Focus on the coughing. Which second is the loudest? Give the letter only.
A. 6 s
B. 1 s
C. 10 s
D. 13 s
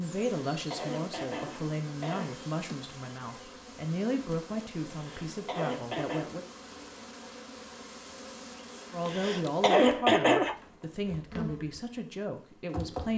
C.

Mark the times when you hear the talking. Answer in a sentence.
The talking can be heard from 0.0 to 6.5 s and from 8.9 to 13.1 s.